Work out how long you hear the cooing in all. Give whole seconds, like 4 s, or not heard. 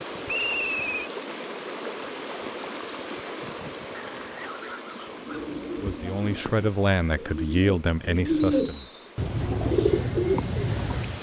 6 s.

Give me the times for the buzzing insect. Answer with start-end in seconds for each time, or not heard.
not heard.